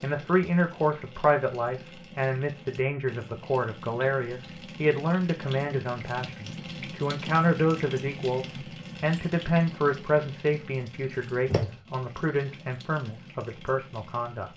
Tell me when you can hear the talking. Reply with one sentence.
The talking can be heard from 0.0 to 14.5 s.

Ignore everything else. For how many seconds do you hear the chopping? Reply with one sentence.
The chopping can't be heard in this clip.